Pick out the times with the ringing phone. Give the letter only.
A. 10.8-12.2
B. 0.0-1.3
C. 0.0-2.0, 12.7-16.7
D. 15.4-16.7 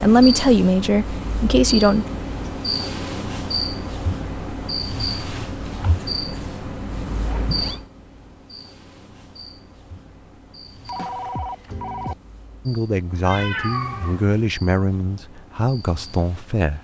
A.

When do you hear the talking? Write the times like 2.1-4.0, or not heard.
0.0-2.0, 12.7-16.7.